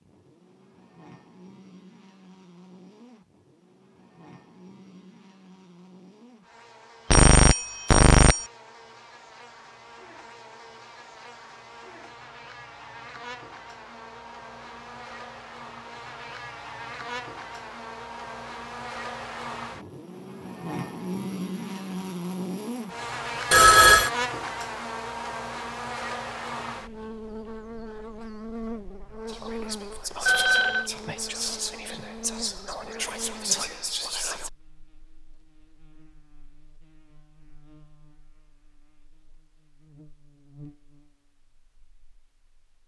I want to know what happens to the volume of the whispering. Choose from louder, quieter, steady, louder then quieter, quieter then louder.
louder.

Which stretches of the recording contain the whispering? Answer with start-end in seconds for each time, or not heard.
29.2-34.5.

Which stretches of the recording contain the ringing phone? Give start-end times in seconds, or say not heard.
7.1-8.4, 23.5-24.1, 30.2-30.9.